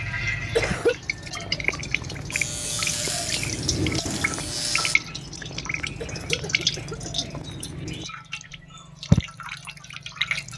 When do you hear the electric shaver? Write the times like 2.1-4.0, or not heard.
2.3-5.0.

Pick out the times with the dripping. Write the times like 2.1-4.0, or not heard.
0.0-10.5.